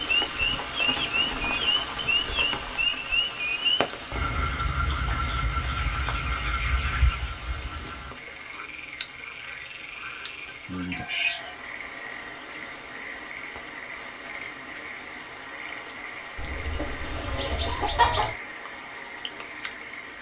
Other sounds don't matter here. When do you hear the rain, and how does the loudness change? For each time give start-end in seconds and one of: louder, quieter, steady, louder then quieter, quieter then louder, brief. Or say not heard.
0.0-20.1 quieter.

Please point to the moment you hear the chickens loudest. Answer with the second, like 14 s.
18 s.